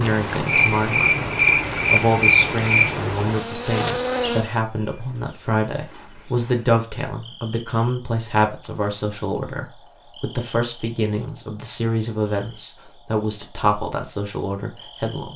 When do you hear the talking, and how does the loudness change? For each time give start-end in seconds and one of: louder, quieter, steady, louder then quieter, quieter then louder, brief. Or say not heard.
0.0-1.3 brief
1.9-15.3 steady.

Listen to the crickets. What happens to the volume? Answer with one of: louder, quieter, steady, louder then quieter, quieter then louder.
quieter.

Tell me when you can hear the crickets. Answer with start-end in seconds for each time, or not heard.
0.0-15.3.